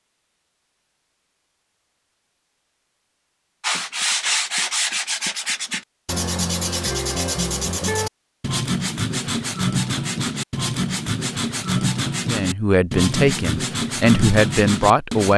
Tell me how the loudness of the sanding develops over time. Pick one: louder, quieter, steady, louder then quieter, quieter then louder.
steady.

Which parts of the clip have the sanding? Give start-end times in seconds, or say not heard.
3.6-15.3.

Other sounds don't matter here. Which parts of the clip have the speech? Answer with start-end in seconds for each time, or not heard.
12.2-15.3.